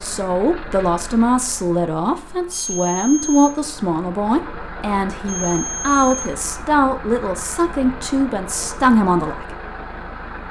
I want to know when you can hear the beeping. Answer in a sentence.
The beeping can be heard from 2.5 to 3.5 s and from 5.2 to 6.2 s.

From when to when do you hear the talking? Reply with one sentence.
You can hear the talking from 0.0 to 9.4 s.